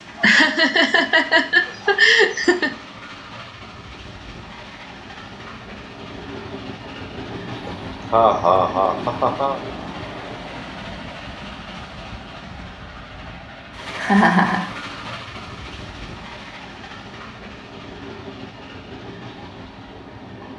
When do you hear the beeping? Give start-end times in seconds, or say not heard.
not heard.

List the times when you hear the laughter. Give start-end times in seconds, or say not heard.
0.1-2.7, 7.7-9.6, 13.9-14.7.